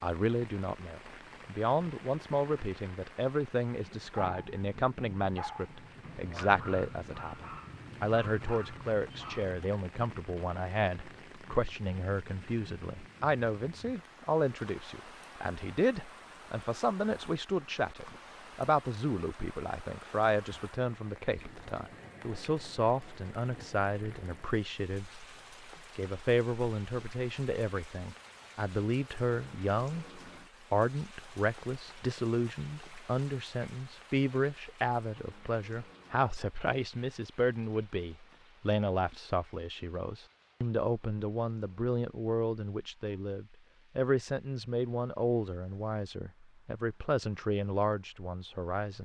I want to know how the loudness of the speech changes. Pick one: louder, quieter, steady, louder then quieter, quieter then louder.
steady.